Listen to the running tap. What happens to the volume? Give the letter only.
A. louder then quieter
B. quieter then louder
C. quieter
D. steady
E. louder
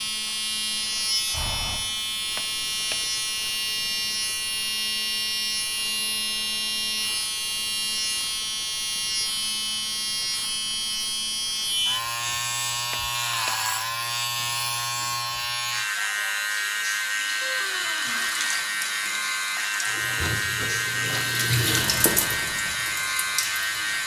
A.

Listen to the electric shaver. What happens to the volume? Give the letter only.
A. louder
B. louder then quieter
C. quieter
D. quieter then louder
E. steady
E.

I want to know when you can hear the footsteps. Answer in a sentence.
You can't hear the footsteps here.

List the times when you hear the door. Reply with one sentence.
You can hear the door from 2.4 to 3.0 s, from 12.9 to 13.6 s and from 17.4 to 18.5 s.